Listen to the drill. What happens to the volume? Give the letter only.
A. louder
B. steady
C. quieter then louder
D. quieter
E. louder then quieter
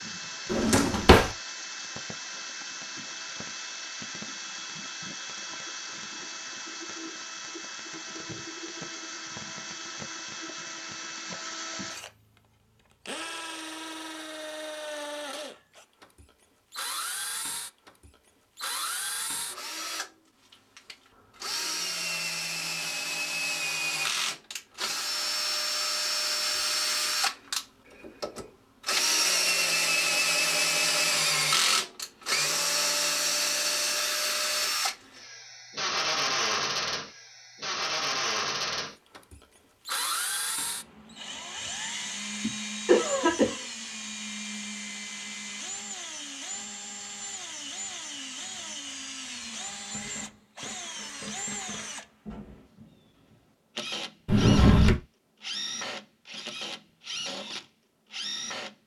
E.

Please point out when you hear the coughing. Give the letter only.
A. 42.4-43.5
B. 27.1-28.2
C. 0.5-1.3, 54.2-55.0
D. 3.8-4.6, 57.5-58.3
A.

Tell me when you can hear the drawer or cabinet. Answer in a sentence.
The drawer or cabinet can be heard from 0.5 to 1.3 s and from 54.2 to 55.0 s.